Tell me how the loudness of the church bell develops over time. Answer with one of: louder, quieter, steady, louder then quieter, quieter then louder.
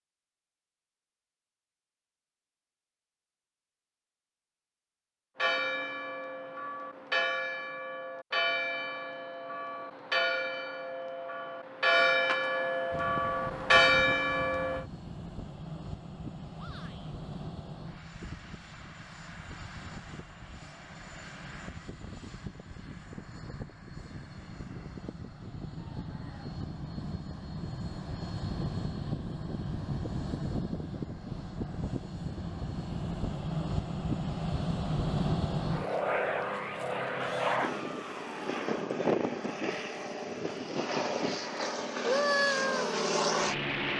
louder.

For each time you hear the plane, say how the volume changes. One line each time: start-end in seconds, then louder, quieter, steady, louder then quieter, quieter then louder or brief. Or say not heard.
12.9-43.9 louder.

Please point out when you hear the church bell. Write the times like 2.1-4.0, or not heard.
5.3-14.8.